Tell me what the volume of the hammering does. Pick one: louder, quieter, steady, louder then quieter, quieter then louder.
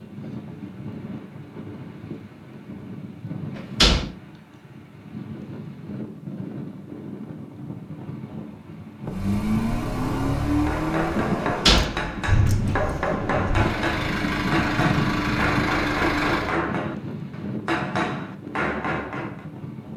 steady.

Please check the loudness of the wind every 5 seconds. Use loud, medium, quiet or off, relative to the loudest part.
medium, medium, loud, loud.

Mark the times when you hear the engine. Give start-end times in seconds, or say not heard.
9.0-16.6.